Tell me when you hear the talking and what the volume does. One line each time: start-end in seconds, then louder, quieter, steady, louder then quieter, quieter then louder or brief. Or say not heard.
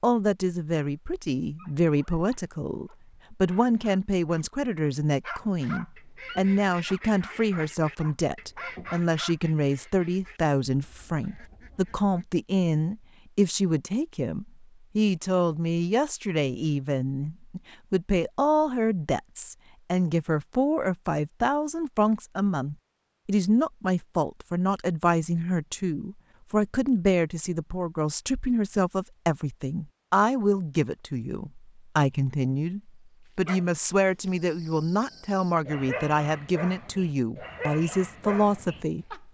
0.0-39.2 steady.